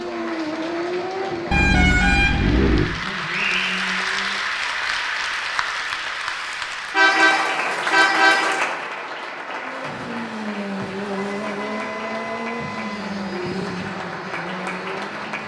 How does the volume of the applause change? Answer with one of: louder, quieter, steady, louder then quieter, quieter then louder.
louder then quieter.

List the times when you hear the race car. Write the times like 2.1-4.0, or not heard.
0.0-4.5, 9.5-15.4.